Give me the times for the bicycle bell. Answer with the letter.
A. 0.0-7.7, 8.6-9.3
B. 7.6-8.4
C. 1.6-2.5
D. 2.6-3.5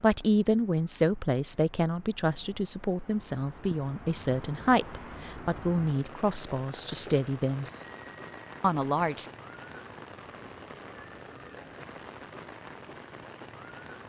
B.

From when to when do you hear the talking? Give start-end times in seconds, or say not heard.
0.0-7.7, 8.6-9.3.